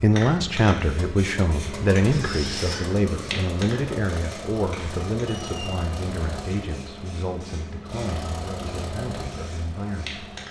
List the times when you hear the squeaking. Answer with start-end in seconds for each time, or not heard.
2.1-2.8, 5.2-5.8.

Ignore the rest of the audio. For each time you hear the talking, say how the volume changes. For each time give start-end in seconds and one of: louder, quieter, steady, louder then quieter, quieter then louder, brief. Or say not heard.
0.0-10.3 quieter.